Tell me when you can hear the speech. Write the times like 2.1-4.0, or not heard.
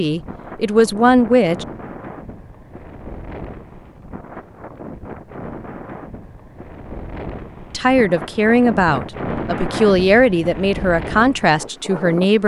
0.0-1.6, 7.7-12.4.